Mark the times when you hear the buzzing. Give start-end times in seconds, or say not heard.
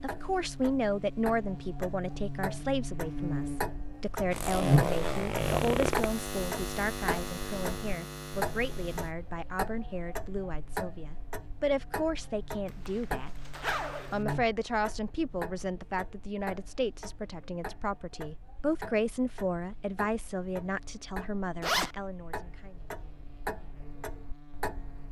0.0-25.0.